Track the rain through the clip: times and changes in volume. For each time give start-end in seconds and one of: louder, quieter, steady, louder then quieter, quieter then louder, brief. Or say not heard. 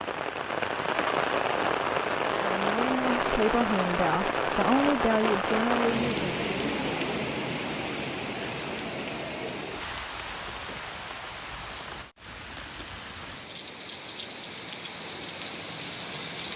0.0-16.5 quieter.